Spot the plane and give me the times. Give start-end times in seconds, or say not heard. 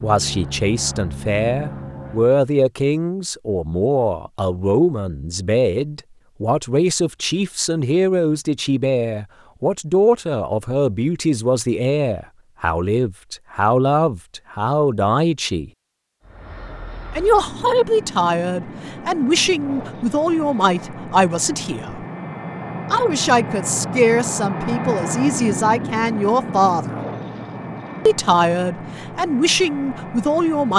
0.0-2.4, 16.2-30.7.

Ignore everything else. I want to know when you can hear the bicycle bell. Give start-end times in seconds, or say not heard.
not heard.